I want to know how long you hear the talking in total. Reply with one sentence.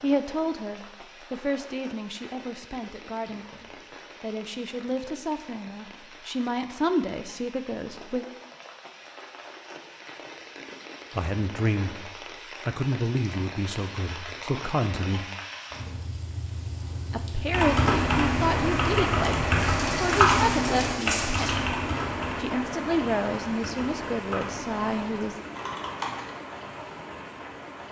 You can hear the talking for 20 seconds altogether.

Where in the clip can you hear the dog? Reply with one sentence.
The dog can't be heard in this clip.